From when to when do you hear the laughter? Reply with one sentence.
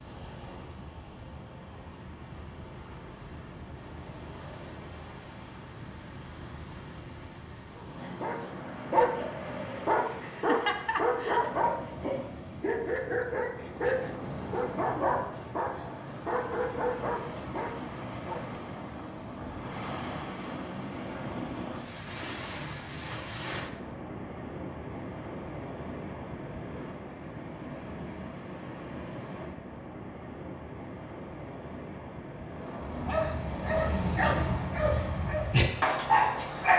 The laughter can be heard from 10.2 to 11.6 s.